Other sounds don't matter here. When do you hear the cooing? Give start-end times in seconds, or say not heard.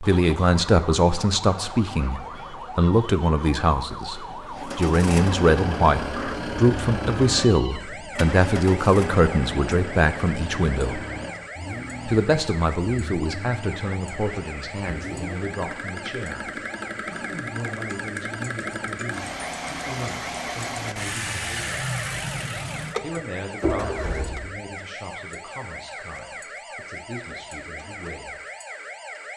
not heard.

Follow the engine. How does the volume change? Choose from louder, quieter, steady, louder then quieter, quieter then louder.
quieter then louder.